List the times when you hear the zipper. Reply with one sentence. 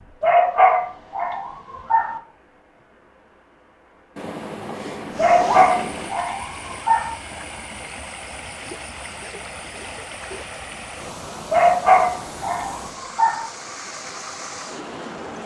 The zipper can be heard from 4.2 to 6.1 s.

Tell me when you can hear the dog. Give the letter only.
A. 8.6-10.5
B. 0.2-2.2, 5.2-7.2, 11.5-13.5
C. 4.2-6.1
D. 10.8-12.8
B.